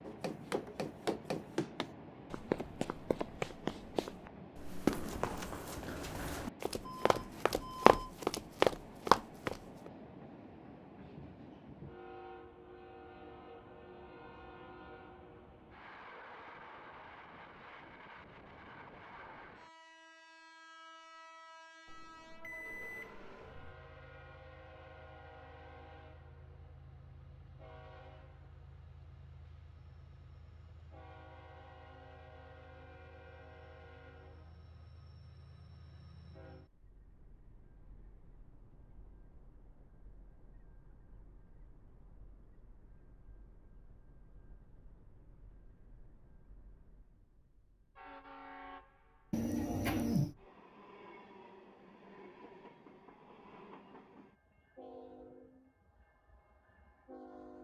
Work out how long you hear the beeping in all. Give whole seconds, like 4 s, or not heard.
4 s.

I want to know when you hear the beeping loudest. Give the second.
50 s.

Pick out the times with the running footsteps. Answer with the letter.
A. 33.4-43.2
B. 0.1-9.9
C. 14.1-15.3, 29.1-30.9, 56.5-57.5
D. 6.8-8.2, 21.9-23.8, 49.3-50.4
B.